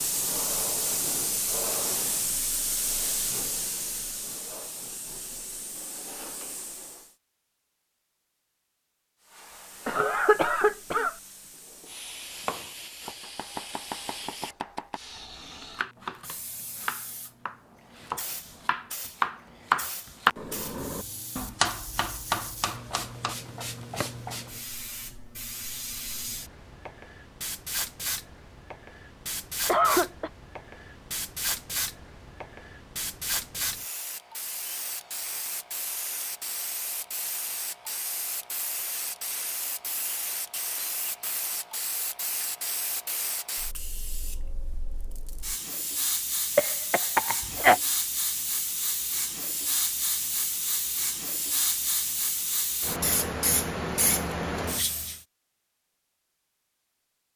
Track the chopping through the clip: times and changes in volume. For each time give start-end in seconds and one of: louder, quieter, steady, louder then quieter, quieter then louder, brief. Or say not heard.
12.4-24.2 louder then quieter.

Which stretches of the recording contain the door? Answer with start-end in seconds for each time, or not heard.
not heard.